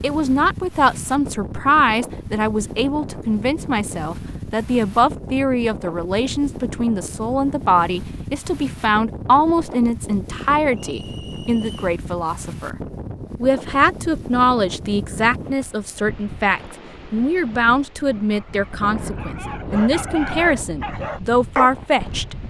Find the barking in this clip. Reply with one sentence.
You can hear the barking from 18.1 to 22.4 s.